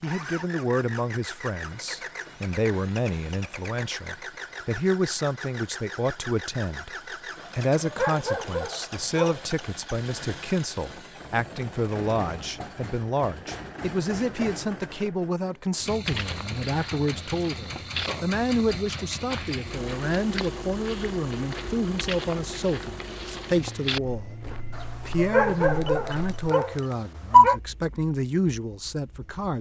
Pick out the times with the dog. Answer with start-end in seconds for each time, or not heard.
7.4-9.6, 24.8-27.6.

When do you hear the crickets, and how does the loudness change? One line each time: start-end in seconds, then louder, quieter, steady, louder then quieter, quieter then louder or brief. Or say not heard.
not heard.